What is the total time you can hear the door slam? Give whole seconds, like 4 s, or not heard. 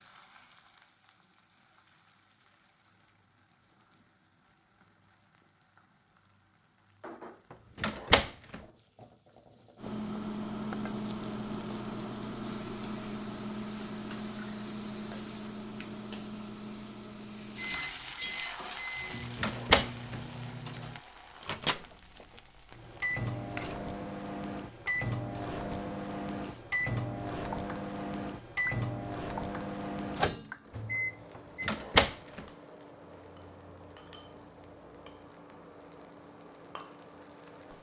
2 s.